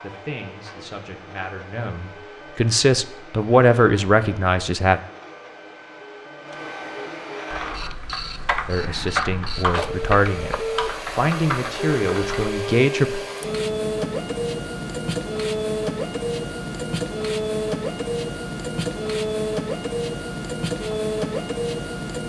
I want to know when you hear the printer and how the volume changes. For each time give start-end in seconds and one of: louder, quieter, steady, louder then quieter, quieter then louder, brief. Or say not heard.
0.0-22.2 louder.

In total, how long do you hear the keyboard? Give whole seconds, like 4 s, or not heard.
5 s.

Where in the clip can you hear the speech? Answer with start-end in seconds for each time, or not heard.
0.0-5.0, 8.7-13.2.